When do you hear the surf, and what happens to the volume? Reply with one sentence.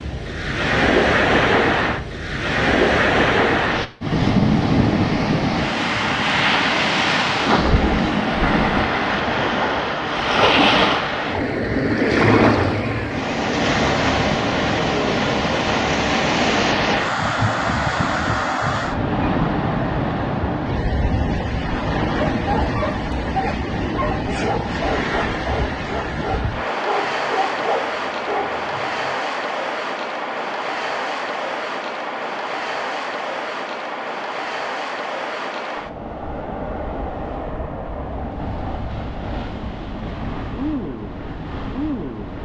You can hear the surf from 0.0 to 42.4 s, getting quieter.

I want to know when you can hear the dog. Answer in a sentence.
The dog can be heard from 22.1 to 29.1 s.